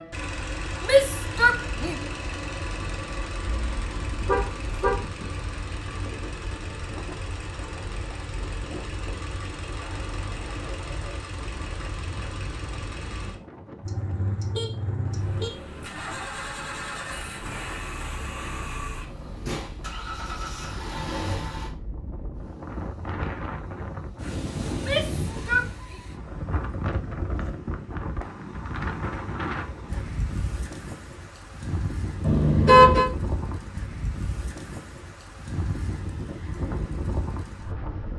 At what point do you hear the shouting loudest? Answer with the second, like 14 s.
1 s.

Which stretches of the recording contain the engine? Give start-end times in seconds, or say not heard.
0.0-21.8.